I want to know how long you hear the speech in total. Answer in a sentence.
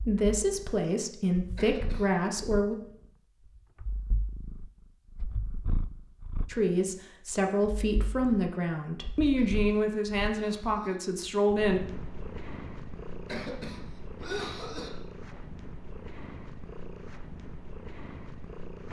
You can hear the speech for 8 seconds altogether.